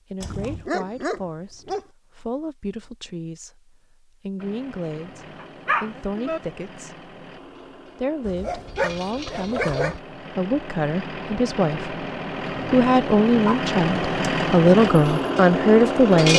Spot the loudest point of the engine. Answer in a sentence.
The loudest moment of the engine is at 16 seconds.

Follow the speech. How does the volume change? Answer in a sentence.
The loudness of the speech goes up.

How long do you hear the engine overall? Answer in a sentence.
The engine can be heard for 12 seconds in total.